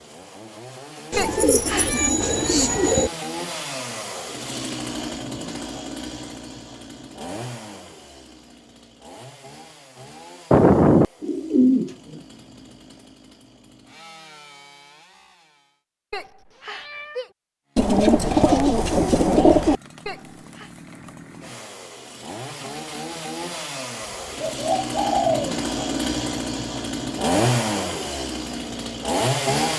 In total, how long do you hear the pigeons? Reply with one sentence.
You can hear the pigeons for 7 seconds altogether.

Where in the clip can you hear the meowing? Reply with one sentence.
You can hear the meowing from 1.1 to 2.1 s, from 16.1 to 17.3 s and from 20.1 to 20.7 s.